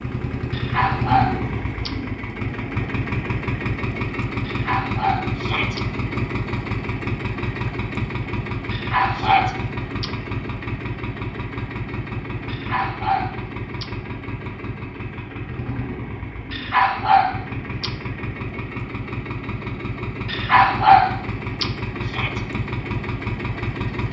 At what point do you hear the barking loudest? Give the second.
21 s.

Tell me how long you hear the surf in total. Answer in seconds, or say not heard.
not heard.